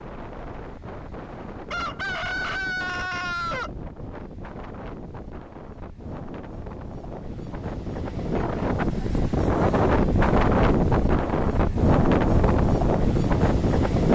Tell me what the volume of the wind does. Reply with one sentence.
The loudness of the wind goes up.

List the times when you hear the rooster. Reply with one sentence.
You can hear the rooster from 1.7 to 3.7 s.